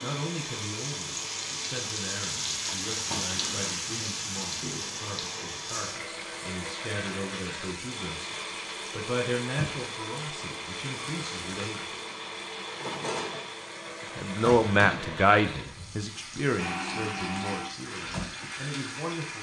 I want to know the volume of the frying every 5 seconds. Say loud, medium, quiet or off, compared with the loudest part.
loud, medium, medium, medium.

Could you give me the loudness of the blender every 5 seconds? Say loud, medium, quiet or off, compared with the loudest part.
medium, loud, loud, loud.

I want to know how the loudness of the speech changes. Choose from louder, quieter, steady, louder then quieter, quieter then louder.
louder then quieter.